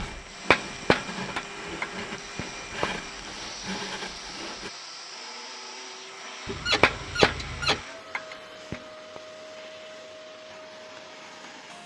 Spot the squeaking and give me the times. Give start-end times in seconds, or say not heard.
6.5-7.8.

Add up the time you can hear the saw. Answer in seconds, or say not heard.
5 s.